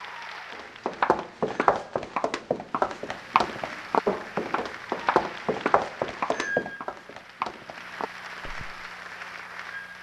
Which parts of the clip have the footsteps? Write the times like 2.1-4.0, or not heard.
0.5-8.8.